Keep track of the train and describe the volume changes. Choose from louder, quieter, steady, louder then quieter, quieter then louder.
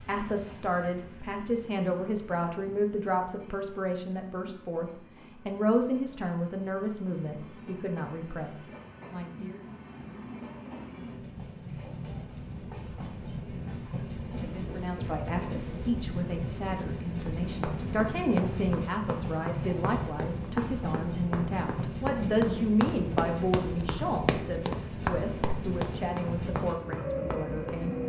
louder.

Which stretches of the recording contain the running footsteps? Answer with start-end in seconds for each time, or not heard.
17.5-27.8.